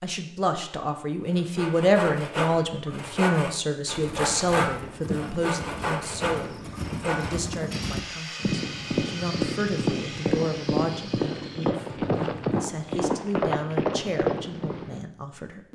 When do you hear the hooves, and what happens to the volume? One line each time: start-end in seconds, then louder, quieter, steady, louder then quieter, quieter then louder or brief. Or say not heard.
4.0-15.1 louder.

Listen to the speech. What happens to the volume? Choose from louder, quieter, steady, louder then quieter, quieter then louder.
quieter.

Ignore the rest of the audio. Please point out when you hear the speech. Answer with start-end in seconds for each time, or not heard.
0.0-15.6.